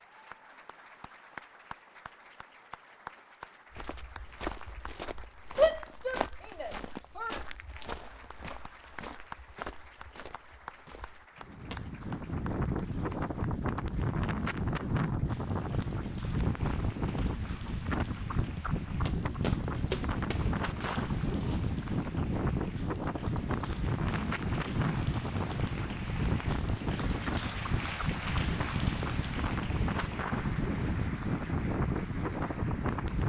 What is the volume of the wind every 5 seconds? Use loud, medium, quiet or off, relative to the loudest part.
off, off, loud, loud, loud, loud, loud.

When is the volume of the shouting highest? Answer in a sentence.
The volume of the shouting peaks at 6 seconds.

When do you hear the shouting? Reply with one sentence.
The shouting can be heard from 5.5 to 7.4 s.